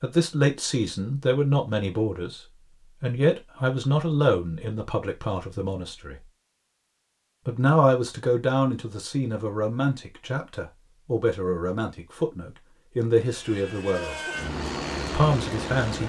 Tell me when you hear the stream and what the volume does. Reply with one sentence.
You can't hear the stream here.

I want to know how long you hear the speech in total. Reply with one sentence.
You can hear the speech for 14 seconds altogether.